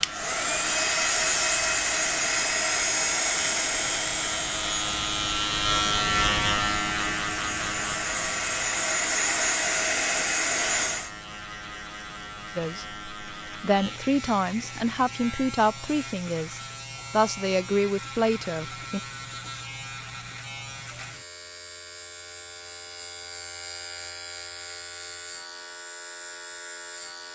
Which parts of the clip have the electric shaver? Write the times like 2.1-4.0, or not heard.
0.0-27.2.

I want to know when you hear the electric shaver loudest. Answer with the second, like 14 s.
6 s.